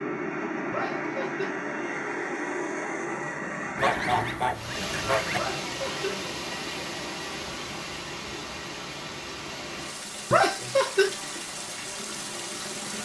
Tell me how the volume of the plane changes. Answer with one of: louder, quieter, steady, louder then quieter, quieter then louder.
steady.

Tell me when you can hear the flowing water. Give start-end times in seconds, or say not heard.
4.5-13.0.